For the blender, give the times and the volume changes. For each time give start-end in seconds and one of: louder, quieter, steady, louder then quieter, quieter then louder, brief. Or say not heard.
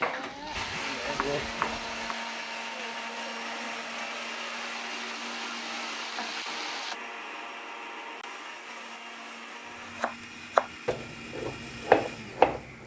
0.0-12.8 quieter.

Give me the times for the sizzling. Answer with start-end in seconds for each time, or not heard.
0.0-7.0.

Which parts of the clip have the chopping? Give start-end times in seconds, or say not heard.
0.0-2.1, 9.9-12.8.